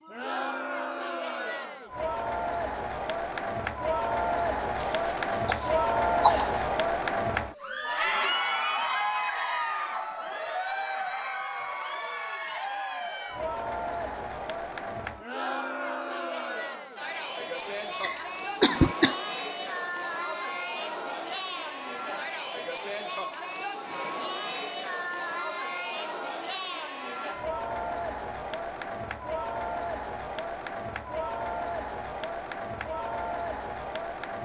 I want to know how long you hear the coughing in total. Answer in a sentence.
The coughing can be heard for 3 seconds in total.